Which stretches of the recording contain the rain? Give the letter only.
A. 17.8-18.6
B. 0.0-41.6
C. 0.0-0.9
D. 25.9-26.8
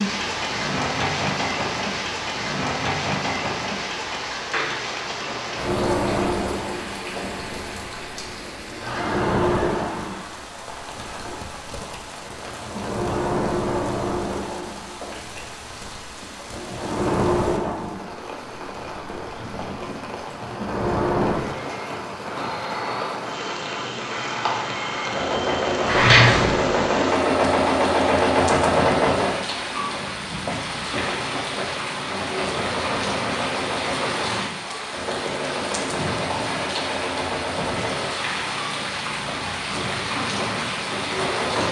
B.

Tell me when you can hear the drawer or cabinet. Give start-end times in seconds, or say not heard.
25.9-26.8.